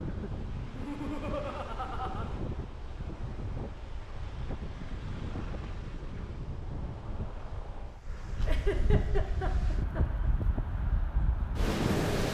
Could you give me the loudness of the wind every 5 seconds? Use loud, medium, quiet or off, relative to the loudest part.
medium, medium, loud.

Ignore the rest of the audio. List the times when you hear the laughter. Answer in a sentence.
The laughter can be heard from 0.6 to 2.2 s and from 8.4 to 10.2 s.